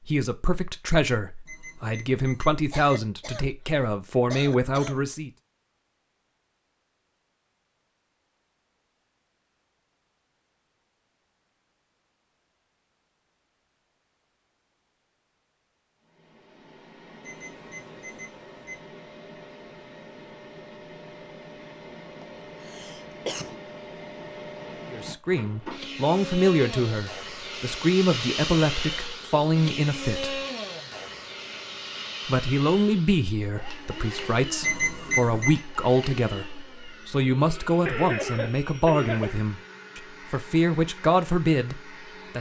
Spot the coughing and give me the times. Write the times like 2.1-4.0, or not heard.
2.7-5.1, 22.2-23.6, 37.9-39.4.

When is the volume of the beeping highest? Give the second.
35 s.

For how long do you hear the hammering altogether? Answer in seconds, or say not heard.
not heard.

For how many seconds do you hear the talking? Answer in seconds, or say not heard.
21 s.